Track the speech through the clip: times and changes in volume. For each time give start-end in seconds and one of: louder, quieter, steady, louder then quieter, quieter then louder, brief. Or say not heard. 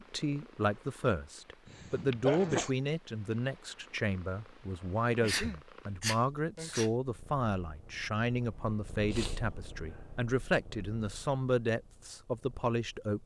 0.0-13.2 steady.